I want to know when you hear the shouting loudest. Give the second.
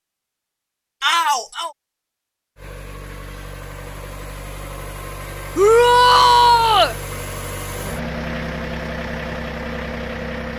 6 s.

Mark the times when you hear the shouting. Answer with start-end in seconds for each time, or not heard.
1.0-1.7, 5.5-7.0.